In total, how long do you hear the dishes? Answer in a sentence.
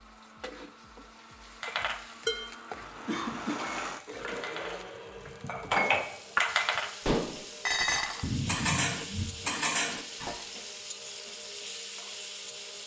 You can hear the dishes for 9 seconds altogether.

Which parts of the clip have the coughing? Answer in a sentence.
You can hear the coughing from 3.0 to 3.6 s and from 8.2 to 9.3 s.